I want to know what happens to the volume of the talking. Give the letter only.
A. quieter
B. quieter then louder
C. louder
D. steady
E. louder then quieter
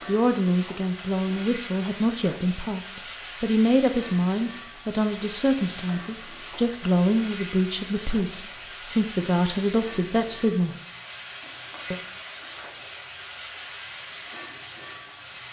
D.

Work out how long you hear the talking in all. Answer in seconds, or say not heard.
11 s.